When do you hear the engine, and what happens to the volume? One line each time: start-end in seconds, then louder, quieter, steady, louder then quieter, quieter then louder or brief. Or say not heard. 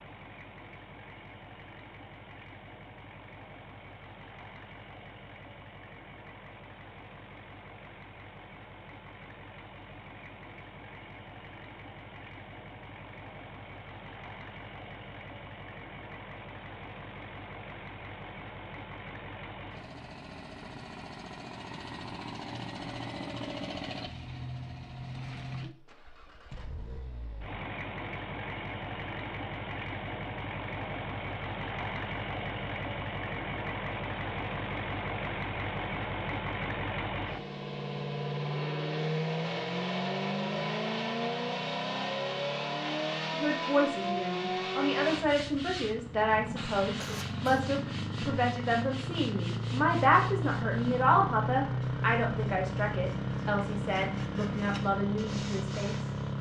0.0-56.3 louder.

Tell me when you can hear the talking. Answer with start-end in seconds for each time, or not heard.
43.3-56.1.